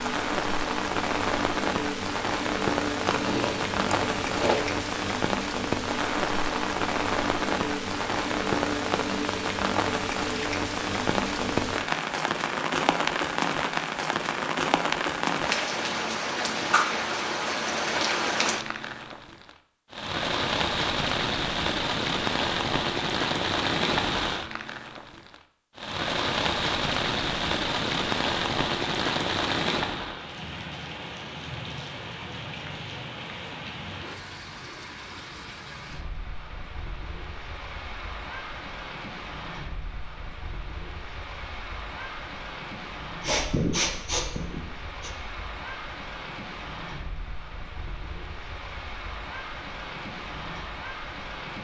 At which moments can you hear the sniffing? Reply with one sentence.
You can hear the sniffing from 43.2 to 45.1 s.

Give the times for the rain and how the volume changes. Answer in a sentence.
You can hear the rain from 0.0 to 51.5 s, getting quieter.